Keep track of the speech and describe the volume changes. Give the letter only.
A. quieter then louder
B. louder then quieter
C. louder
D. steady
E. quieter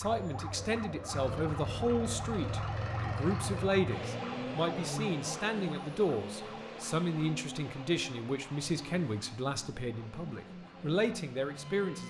D.